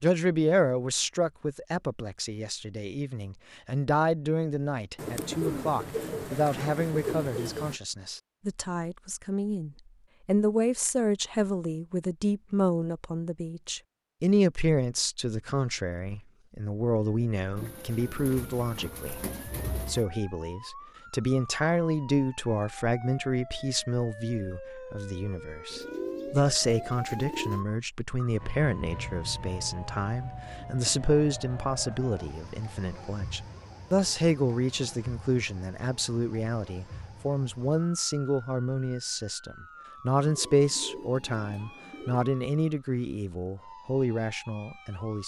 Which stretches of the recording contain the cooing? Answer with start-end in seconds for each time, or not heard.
5.0-7.8, 17.6-20.1, 25.7-27.6, 40.2-42.2.